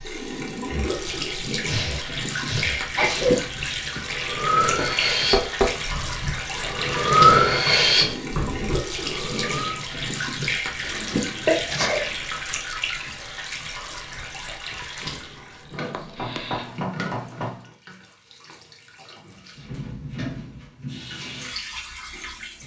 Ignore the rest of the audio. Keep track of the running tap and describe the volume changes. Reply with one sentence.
The loudness of the running tap goes down.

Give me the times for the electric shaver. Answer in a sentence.
The electric shaver can't be heard in this clip.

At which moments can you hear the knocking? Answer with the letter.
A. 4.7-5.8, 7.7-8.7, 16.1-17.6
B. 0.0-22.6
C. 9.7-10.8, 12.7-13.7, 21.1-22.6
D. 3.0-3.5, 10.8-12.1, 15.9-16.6
A.